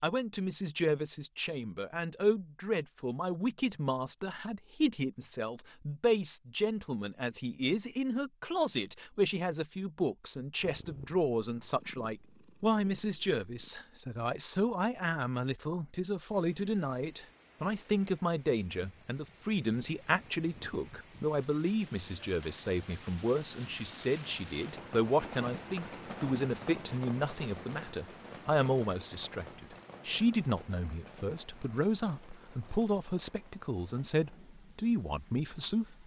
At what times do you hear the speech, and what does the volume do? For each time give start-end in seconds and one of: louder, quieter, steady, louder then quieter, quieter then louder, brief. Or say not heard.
0.0-36.0 steady.